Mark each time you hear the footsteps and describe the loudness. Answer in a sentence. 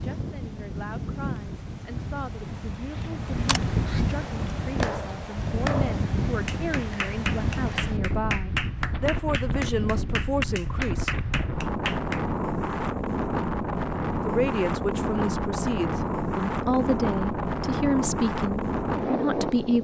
You can't hear the footsteps here.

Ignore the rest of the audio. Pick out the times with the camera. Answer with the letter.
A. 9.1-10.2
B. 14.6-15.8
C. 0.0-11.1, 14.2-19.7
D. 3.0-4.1
D.